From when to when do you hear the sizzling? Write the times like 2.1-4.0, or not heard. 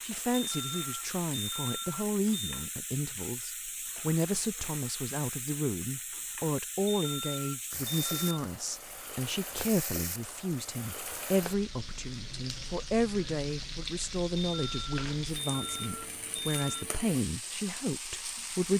0.0-18.7.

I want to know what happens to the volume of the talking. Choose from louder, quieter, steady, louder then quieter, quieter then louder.
steady.